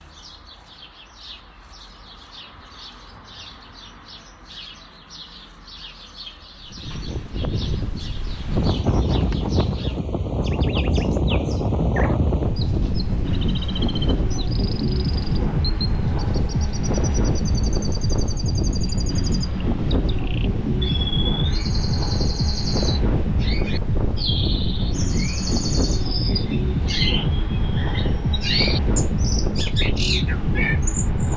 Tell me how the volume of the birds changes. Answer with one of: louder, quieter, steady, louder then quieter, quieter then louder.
louder.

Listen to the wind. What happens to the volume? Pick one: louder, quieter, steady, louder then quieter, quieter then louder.
steady.